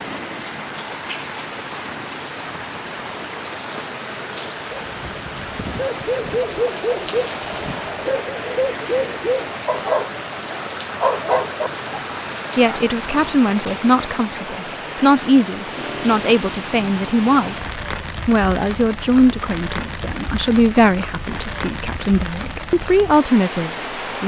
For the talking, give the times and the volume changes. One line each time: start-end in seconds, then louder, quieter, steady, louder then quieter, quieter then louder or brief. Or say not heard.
12.6-24.2 steady.